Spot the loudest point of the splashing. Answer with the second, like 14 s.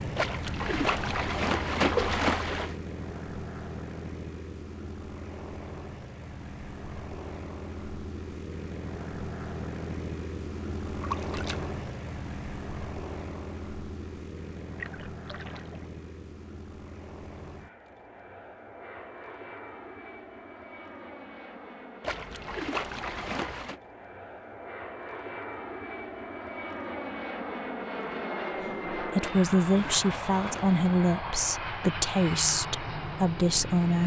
2 s.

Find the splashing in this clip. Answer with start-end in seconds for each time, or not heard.
0.1-2.8, 11.0-11.7, 14.8-15.8, 22.0-23.8, 29.2-30.8.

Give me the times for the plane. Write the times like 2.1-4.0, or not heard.
0.0-34.0.